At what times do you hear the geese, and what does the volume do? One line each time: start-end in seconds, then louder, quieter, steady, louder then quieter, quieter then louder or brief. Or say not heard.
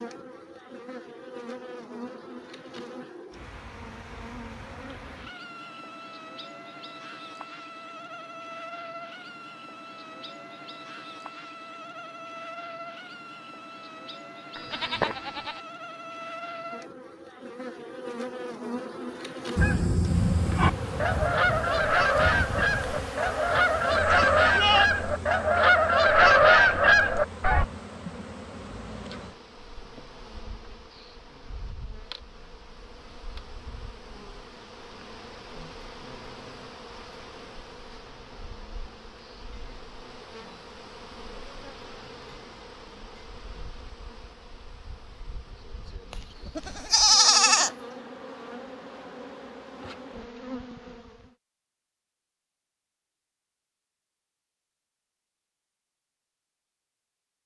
19.6-27.6 louder.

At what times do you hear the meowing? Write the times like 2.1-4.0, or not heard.
not heard.